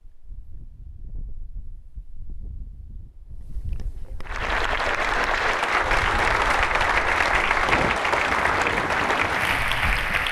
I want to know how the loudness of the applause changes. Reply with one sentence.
The volume of the applause stays about the same.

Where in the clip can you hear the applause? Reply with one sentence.
The applause can be heard from 4.2 to 10.2 s.